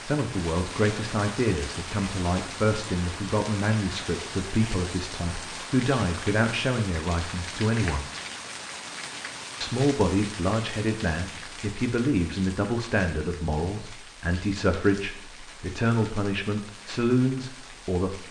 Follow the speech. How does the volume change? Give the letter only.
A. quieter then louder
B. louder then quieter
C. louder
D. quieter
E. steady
E.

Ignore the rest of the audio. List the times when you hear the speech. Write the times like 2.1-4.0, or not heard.
0.0-8.1, 9.6-18.2.